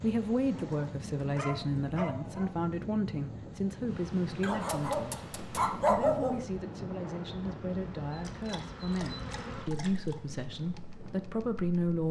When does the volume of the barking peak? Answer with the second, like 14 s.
6 s.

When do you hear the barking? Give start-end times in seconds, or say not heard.
0.5-2.5, 4.4-6.4, 8.2-10.2.